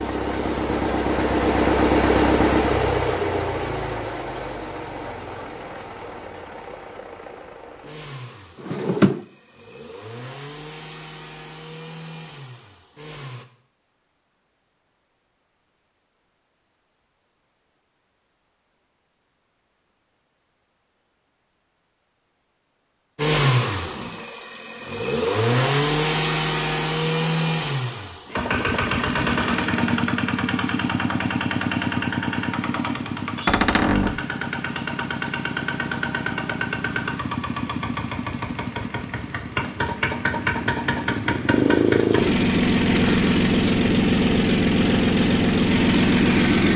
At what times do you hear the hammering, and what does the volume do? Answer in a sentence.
The hammering can't be heard in this clip.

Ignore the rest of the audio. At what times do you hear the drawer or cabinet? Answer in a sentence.
You can hear the drawer or cabinet from 8.6 to 9.2 s and from 33.5 to 34.2 s.